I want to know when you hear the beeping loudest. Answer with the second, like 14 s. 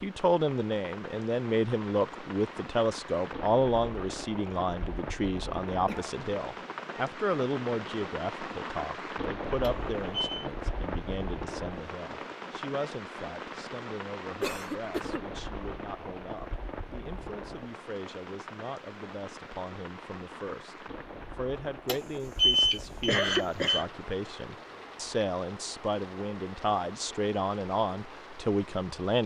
23 s.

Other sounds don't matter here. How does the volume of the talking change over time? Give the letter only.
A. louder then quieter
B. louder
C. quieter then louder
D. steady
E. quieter
C.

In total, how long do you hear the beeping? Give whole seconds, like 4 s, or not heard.
3 s.